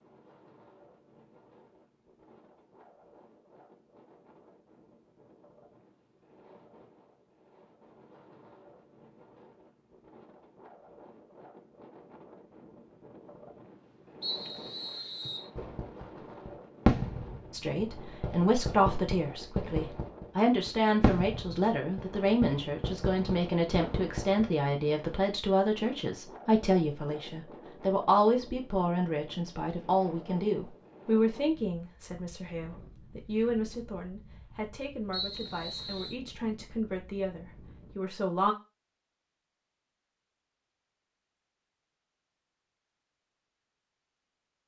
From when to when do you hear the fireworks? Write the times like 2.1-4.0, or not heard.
15.6-24.4.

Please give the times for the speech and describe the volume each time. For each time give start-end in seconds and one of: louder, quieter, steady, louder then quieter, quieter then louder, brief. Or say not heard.
17.5-38.5 quieter.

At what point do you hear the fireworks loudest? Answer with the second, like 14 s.
17 s.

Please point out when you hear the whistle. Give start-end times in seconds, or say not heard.
14.2-15.5, 35.1-36.1.